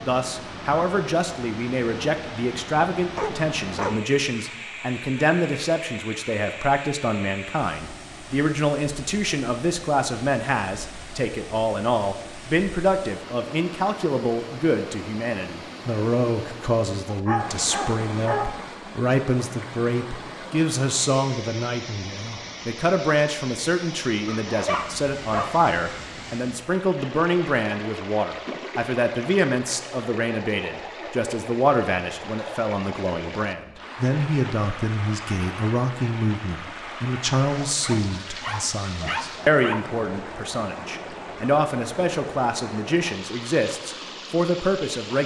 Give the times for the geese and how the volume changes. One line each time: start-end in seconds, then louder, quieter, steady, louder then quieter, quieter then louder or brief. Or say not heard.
not heard.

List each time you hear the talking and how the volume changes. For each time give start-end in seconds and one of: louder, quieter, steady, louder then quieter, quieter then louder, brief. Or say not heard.
0.1-45.2 steady.